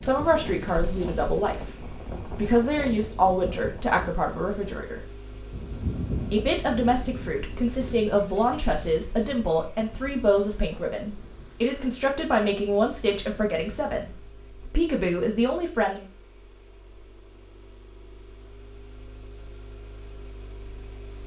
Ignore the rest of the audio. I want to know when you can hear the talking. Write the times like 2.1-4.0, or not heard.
0.0-5.0, 6.3-16.1.